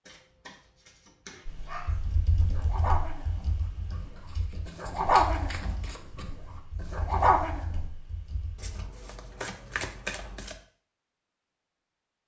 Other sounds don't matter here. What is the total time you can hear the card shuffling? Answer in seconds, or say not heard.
6 s.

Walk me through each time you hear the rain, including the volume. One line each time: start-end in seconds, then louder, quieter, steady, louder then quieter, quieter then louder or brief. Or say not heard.
not heard.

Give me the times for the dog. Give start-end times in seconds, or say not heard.
1.6-7.6.